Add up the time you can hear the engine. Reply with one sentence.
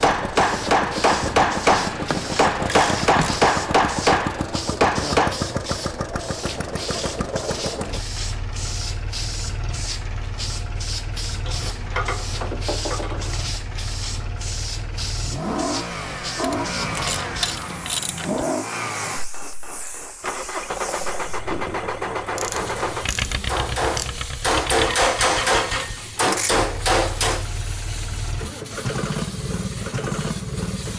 You can hear the engine for 31 seconds altogether.